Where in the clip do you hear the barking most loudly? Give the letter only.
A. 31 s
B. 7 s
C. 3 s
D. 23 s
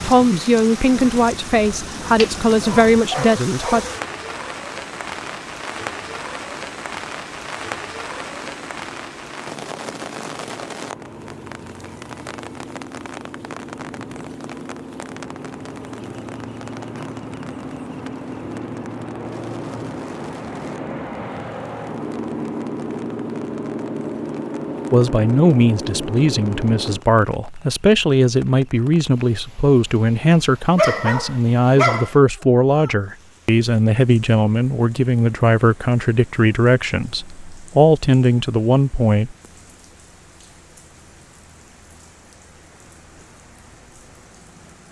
A.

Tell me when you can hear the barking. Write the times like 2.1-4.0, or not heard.
2.0-4.0, 30.8-32.1.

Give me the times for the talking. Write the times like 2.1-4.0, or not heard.
0.0-3.9, 24.9-39.4.